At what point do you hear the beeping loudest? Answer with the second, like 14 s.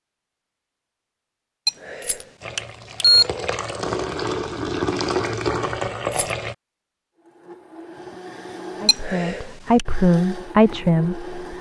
3 s.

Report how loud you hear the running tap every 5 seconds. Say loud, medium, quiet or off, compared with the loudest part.
loud, loud, off.